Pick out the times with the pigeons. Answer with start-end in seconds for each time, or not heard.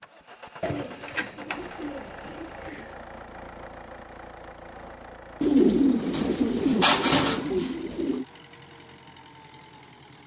0.6-3.0, 5.4-8.2.